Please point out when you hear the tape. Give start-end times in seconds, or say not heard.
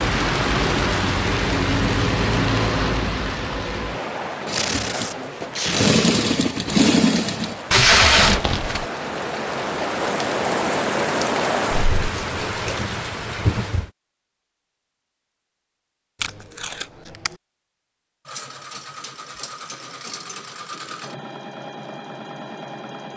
4.5-6.0, 7.7-8.8, 16.2-17.4.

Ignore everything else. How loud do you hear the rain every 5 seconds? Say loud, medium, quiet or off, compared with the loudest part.
loud, medium, loud, off, off.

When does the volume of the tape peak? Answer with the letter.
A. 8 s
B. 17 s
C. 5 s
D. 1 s
A.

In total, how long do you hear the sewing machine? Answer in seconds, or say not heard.
8 s.